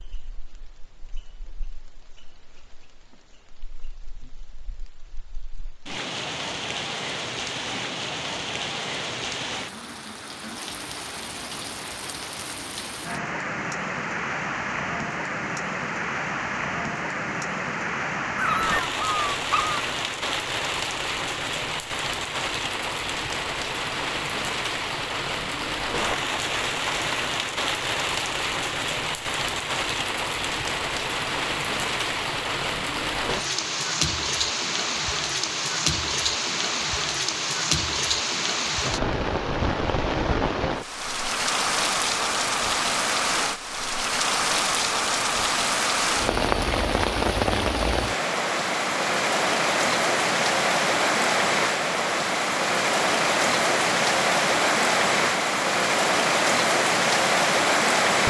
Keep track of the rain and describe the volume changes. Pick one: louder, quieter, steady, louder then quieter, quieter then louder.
louder.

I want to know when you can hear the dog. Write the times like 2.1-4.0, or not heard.
18.4-19.9.